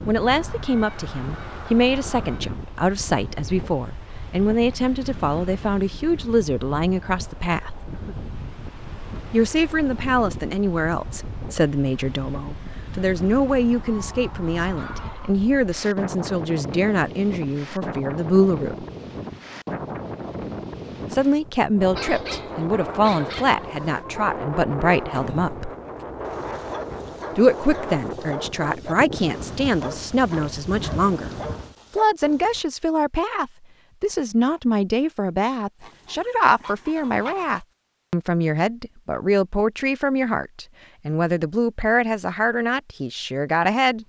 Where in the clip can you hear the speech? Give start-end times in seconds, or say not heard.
0.1-7.8, 9.3-18.9, 21.1-25.7, 27.4-44.0.